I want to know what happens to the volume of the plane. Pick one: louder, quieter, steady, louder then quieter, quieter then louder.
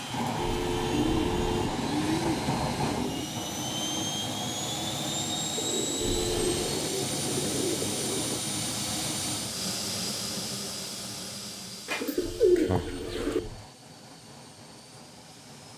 quieter.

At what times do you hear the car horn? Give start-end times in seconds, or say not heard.
0.3-1.6, 6.0-6.8, 12.2-13.7.